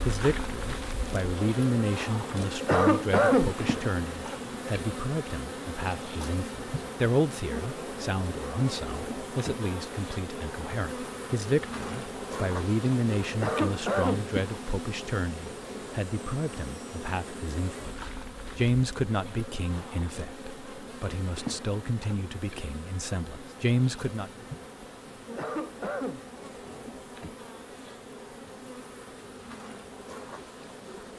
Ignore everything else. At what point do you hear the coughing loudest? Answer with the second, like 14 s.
3 s.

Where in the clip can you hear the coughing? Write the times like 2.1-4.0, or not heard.
2.6-3.5, 13.3-14.2, 25.3-26.2.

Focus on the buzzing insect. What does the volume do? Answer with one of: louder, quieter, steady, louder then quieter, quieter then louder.
quieter.